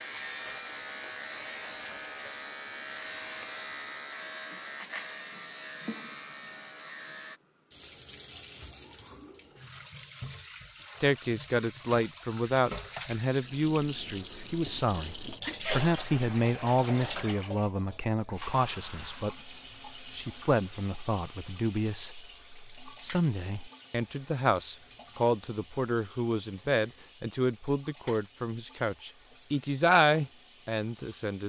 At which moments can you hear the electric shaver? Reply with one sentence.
The electric shaver can be heard from 0.0 to 7.4 s.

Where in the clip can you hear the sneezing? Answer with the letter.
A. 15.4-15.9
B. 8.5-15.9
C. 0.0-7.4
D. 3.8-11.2
A.